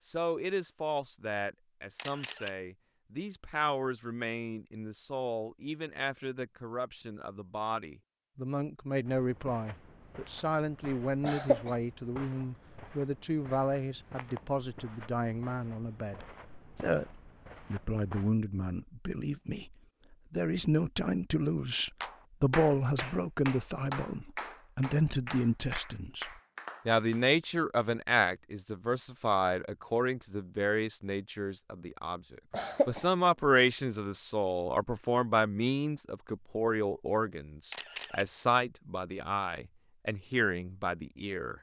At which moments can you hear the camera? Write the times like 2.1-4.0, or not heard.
1.9-2.5, 37.7-38.2.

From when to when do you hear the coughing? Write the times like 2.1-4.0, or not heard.
11.2-11.7, 32.5-33.0.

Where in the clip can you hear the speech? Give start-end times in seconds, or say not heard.
0.0-41.5.